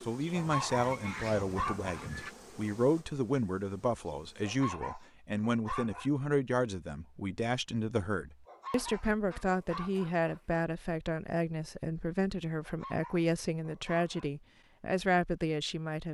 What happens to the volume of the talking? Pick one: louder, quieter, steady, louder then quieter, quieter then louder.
steady.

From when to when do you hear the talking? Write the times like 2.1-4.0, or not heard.
0.0-16.1.